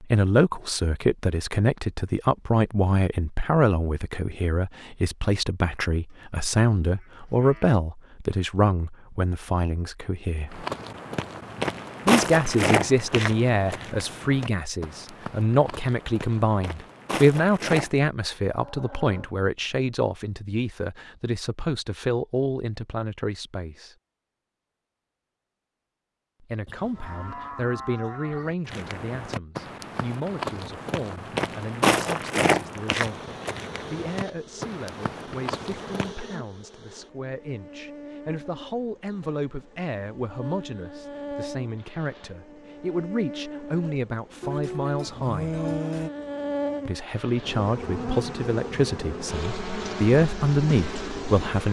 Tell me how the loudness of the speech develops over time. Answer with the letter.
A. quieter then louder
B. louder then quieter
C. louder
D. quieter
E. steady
A.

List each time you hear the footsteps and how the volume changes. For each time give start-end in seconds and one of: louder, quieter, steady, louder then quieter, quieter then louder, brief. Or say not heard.
10.5-17.9 quieter then louder
28.7-36.1 louder then quieter.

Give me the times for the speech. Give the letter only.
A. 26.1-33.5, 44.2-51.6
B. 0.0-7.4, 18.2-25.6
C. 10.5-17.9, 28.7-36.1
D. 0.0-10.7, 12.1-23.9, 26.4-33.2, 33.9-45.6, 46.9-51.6
D.